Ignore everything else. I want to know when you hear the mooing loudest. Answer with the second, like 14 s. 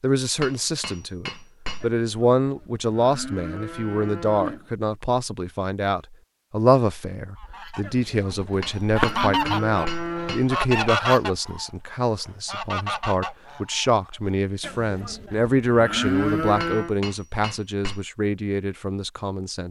16 s.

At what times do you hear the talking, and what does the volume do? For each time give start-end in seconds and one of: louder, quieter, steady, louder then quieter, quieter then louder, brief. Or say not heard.
0.0-19.6 steady.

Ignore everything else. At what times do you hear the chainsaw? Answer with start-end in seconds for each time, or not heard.
not heard.